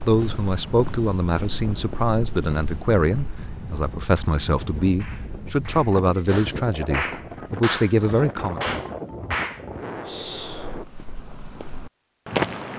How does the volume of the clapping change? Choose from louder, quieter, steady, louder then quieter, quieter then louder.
louder.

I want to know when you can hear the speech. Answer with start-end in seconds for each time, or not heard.
0.0-8.6.